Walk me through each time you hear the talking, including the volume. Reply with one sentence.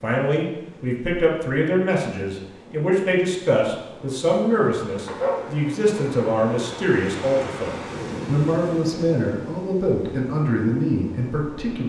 You can hear the talking from 0.0 to 11.8 s, at a steady volume.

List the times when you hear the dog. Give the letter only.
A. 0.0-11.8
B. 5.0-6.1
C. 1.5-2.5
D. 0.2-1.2
B.